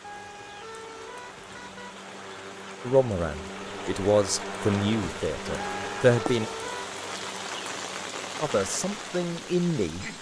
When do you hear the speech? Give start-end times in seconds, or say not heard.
2.9-6.5, 8.4-10.1.